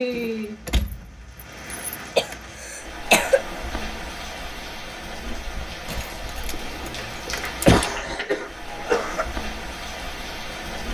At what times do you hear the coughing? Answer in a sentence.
You can hear the coughing from 2.1 to 3.4 s and from 7.4 to 9.2 s.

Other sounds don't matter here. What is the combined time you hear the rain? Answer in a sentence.
The rain can be heard for 11 seconds in total.